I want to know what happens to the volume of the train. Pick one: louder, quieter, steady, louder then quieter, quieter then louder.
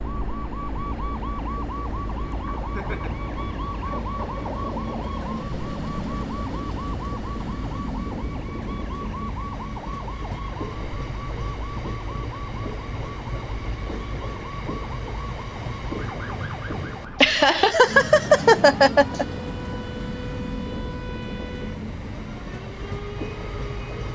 steady.